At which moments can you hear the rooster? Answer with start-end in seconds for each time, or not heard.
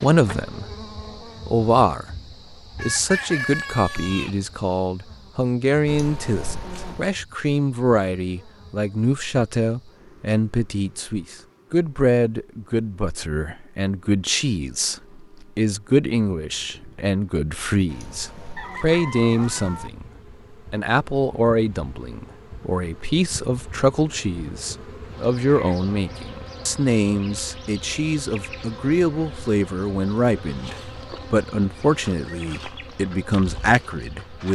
2.8-4.3, 18.6-19.6.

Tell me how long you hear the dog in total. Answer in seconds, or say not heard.
not heard.